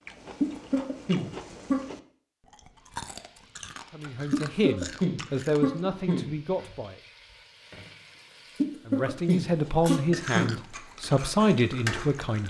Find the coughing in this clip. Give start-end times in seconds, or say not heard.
0.4-1.9, 4.3-6.3, 8.6-10.6.